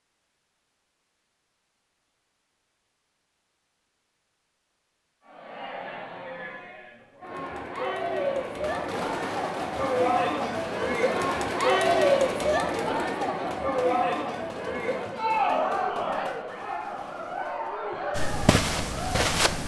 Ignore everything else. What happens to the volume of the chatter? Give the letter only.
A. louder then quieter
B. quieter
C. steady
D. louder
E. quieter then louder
A.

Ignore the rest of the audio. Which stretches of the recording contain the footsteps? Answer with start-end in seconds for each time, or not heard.
18.1-19.6.